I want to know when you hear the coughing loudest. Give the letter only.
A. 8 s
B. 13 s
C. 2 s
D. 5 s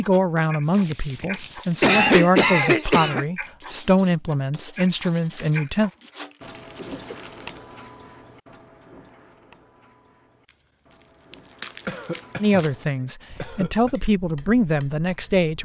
C.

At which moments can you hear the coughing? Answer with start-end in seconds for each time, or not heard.
1.8-3.2, 6.8-7.2, 11.8-12.7, 13.3-13.9.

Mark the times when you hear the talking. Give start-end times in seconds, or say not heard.
0.0-5.9, 12.4-15.6.